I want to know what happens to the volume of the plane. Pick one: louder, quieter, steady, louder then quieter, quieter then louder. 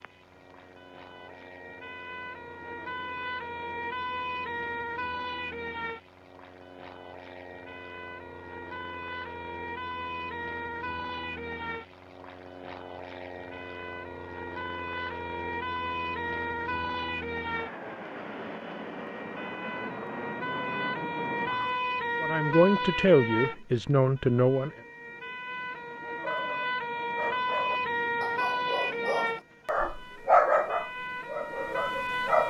louder.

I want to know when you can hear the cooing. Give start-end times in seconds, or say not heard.
not heard.